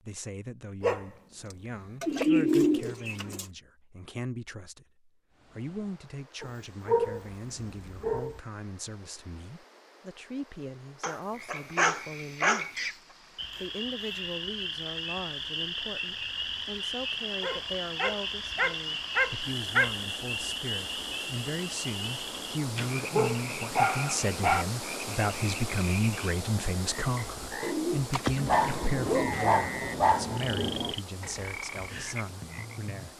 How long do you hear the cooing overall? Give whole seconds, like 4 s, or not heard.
3 s.